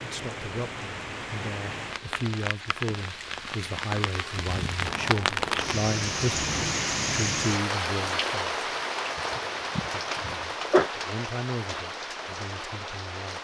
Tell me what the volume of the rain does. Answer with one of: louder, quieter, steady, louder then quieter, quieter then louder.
louder then quieter.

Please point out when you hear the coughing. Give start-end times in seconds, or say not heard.
9.2-10.9.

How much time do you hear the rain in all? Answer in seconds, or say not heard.
13 s.